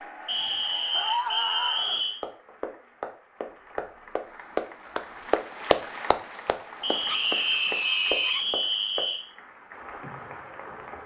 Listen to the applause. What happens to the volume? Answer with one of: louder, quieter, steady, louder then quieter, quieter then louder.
louder then quieter.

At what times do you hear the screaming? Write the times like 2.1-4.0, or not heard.
0.9-2.0, 7.0-8.4.